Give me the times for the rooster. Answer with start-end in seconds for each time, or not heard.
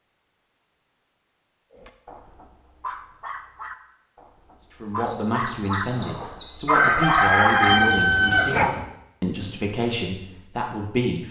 5.0-8.8.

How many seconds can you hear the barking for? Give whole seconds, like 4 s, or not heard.
7 s.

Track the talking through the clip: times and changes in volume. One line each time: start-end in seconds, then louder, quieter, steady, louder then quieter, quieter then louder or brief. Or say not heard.
4.8-11.2 steady.